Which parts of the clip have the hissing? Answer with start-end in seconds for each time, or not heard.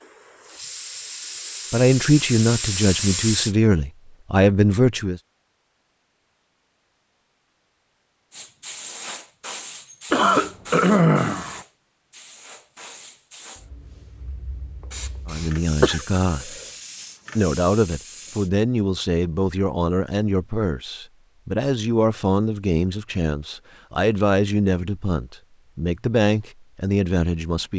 0.0-3.5, 8.3-18.5.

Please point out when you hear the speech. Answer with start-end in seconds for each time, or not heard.
1.7-5.2, 15.2-16.6, 17.4-27.7.